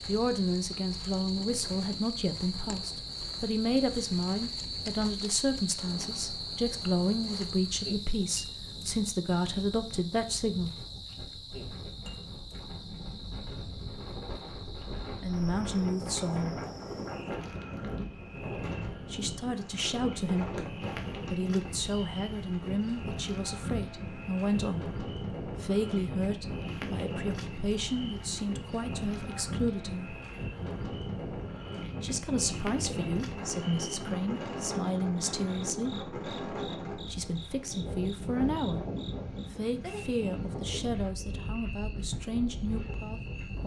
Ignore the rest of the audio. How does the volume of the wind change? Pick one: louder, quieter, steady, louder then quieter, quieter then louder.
louder.